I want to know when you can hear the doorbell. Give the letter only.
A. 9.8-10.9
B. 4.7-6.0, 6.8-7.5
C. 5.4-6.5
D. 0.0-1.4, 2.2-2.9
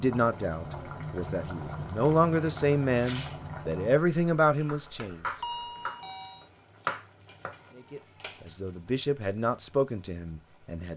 C.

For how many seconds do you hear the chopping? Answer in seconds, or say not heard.
2 s.